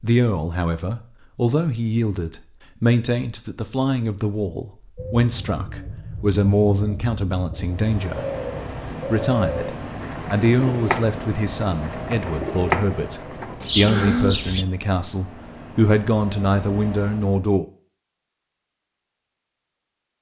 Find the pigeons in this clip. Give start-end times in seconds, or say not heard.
5.0-14.7.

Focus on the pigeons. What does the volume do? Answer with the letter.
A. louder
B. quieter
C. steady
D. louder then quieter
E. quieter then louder
A.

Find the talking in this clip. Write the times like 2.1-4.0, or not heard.
0.0-8.2, 9.1-17.6.